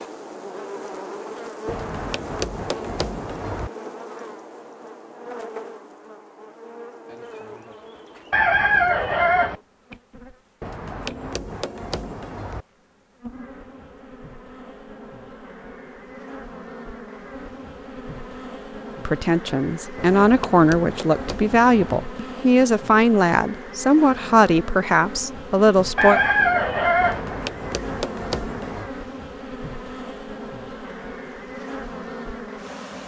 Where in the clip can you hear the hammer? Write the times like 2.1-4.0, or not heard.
1.6-3.7, 10.6-12.7, 19.9-22.0, 27.0-28.9.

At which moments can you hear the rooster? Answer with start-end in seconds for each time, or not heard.
8.3-9.6, 25.9-27.2.